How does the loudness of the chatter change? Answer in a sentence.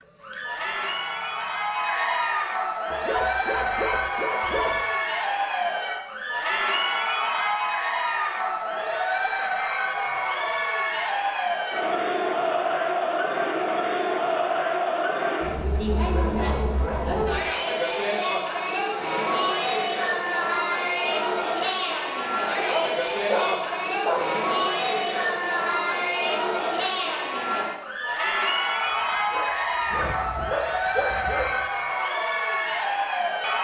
The loudness of the chatter stays about the same.